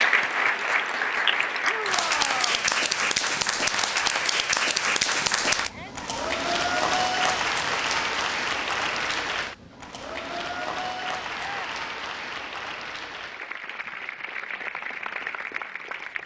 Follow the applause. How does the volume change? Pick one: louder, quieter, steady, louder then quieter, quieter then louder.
quieter.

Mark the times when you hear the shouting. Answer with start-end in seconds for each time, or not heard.
1.6-2.7, 5.6-6.2, 11.3-11.8.